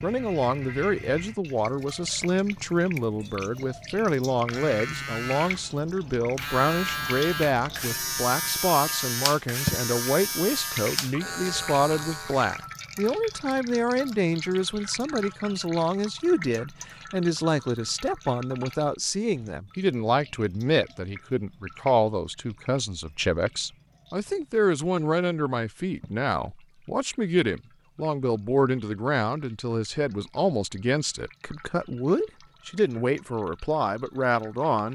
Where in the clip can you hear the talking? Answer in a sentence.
The talking can be heard from 0.0 to 34.8 s.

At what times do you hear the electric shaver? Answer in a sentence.
You can hear the electric shaver from 4.3 to 12.7 s.